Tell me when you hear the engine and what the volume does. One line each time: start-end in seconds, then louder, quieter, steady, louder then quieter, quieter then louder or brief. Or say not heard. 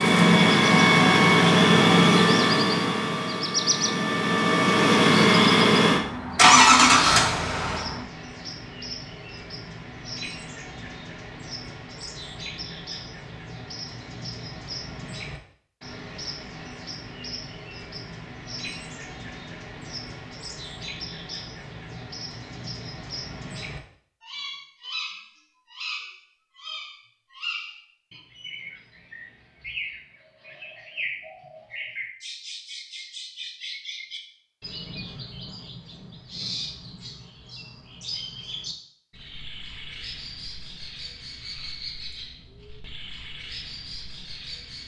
0.0-8.0 quieter then louder.